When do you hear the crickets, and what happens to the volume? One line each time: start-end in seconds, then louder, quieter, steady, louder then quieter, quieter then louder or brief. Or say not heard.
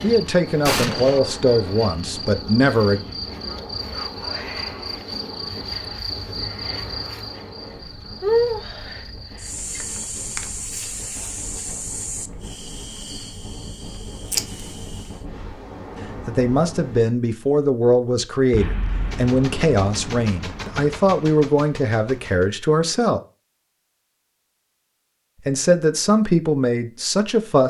0.0-15.2 louder then quieter.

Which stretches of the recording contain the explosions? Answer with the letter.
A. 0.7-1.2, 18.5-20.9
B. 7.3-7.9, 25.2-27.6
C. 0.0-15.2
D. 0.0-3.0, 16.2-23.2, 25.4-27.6
A.